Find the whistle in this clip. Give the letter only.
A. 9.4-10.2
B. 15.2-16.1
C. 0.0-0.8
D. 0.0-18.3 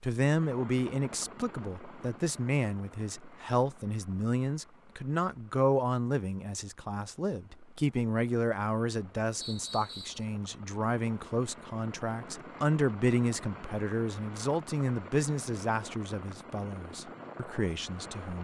A.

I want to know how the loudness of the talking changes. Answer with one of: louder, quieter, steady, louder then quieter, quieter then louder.
steady.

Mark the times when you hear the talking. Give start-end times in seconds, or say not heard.
0.0-18.3.